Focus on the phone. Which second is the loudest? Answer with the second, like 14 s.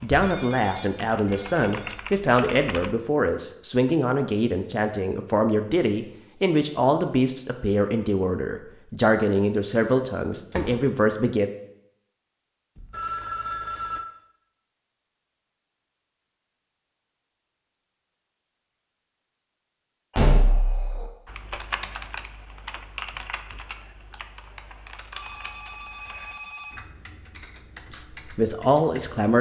13 s.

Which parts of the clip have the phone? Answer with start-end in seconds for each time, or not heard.
0.2-2.0, 12.8-14.1, 25.1-26.8.